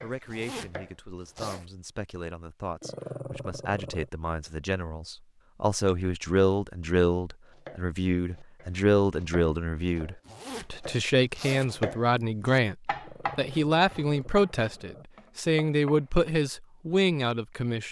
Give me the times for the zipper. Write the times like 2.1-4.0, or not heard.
0.2-1.6, 10.2-12.2.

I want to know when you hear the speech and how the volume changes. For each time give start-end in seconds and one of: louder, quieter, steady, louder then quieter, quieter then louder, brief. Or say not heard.
0.0-17.8 louder.